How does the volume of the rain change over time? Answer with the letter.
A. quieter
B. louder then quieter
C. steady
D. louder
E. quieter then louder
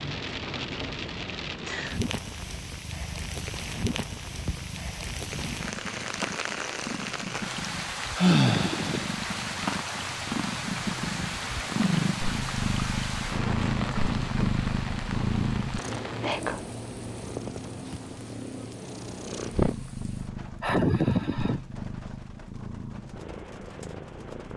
A.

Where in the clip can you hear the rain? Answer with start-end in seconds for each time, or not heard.
0.0-24.5.